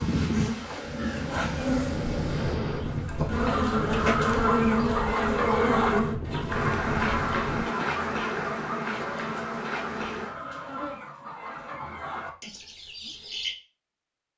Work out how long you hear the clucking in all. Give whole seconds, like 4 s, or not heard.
10 s.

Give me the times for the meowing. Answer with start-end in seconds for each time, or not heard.
1.1-3.0.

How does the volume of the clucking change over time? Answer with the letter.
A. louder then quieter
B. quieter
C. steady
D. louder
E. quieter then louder
B.